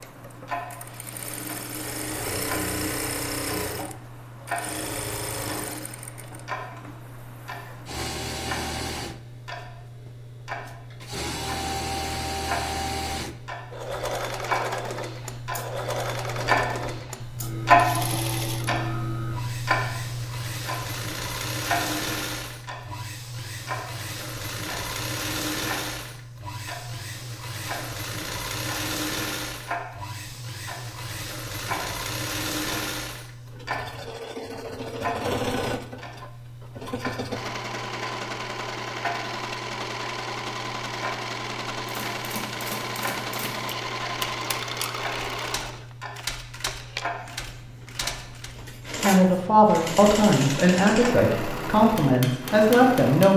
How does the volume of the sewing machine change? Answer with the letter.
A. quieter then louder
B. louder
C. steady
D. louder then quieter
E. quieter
C.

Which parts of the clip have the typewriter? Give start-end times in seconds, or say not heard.
41.9-48.6.